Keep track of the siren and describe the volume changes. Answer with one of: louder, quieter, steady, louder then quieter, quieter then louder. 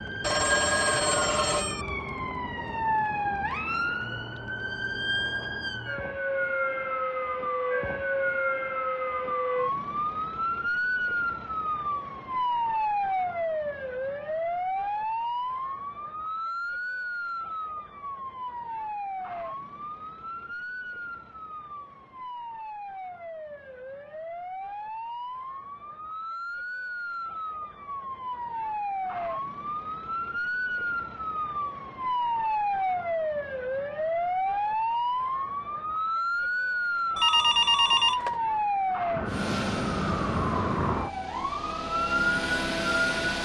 quieter then louder.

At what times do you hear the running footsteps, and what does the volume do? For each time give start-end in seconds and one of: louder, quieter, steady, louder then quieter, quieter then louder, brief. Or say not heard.
not heard.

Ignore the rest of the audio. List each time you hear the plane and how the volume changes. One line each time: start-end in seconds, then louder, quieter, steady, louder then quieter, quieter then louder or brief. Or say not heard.
39.2-43.3 quieter then louder.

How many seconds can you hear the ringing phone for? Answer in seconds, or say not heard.
3 s.